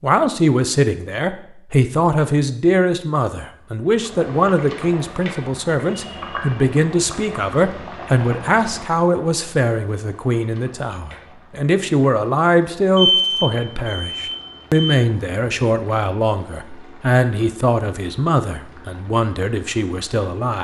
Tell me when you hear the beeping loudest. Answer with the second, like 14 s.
13 s.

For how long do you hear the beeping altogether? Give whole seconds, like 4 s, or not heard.
2 s.